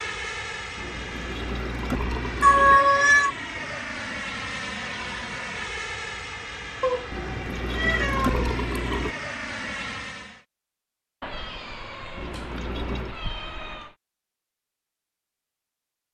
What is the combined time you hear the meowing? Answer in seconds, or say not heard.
5 s.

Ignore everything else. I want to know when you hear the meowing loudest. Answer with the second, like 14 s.
3 s.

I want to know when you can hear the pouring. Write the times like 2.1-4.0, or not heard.
0.8-2.8, 7.1-9.2, 12.2-13.2.